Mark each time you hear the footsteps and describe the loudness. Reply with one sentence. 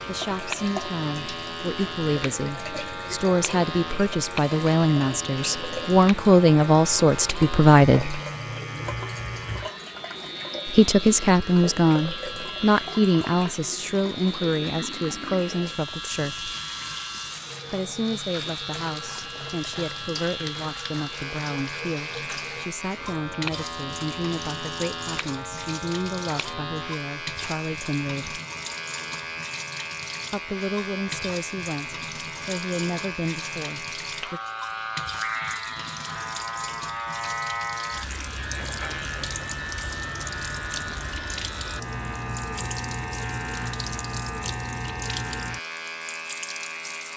You can't hear the footsteps here.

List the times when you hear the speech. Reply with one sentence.
The speech can be heard from 0.0 to 8.2 s, from 10.7 to 16.5 s, from 17.7 to 28.4 s and from 30.3 to 34.4 s.